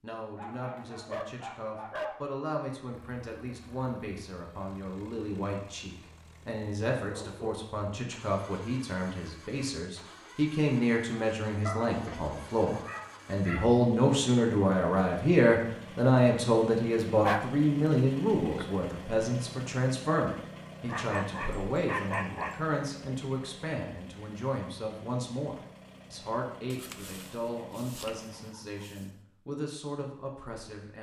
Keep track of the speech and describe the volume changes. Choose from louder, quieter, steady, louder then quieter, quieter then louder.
louder then quieter.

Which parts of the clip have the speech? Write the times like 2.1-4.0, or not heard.
0.0-30.9.